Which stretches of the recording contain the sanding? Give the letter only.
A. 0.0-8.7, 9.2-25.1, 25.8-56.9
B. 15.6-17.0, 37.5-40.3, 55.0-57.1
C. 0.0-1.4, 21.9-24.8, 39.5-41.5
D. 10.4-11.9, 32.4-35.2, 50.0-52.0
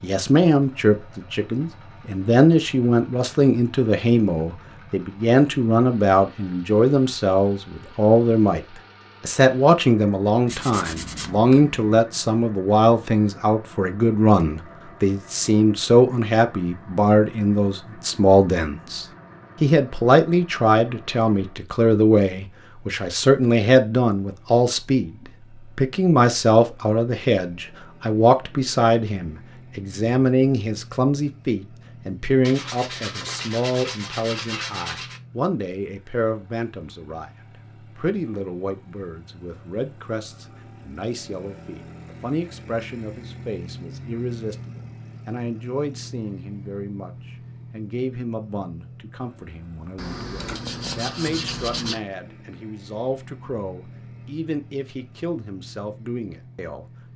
D.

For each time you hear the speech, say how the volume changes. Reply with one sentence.
The speech can be heard from 0.0 to 8.7 s, at a steady volume; from 9.2 to 25.1 s, at a steady volume; and from 25.8 to 56.9 s, getting quieter.